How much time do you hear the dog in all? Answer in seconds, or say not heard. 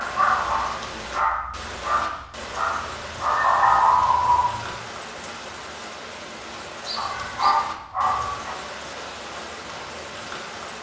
6 s.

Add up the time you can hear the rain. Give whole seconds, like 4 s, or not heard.
11 s.